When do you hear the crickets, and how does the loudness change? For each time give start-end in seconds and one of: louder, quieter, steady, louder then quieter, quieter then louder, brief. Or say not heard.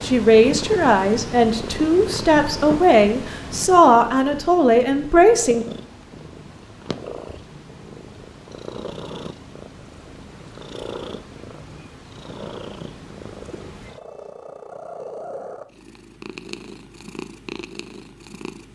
not heard.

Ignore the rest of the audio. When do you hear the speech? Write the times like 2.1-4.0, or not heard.
0.0-5.7.